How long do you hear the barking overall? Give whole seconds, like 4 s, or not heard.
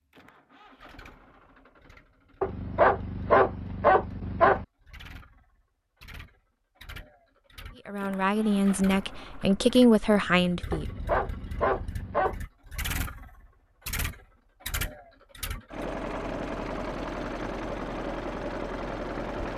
4 s.